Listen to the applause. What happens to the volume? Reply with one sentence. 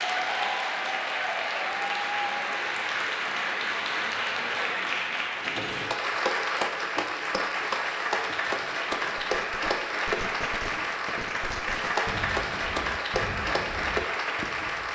The loudness of the applause stays about the same.